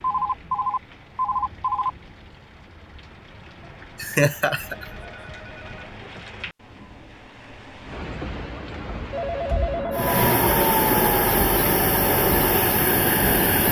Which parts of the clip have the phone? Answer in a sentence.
You can hear the phone from 0.0 to 1.9 s, from 4.6 to 6.2 s and from 9.1 to 10.2 s.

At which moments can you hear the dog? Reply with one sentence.
You can't hear the dog here.